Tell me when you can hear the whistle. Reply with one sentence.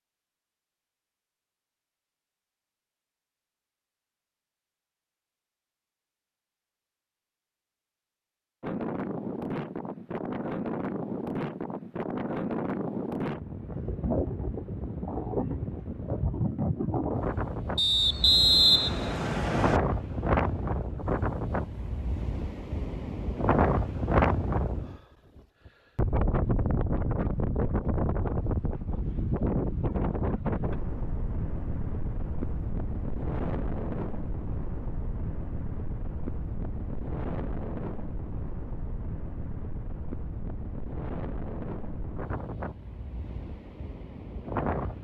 You can hear the whistle from 17.8 to 19.8 s.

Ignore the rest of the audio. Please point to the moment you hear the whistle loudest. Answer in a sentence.
The volume of the whistle peaks at 19 seconds.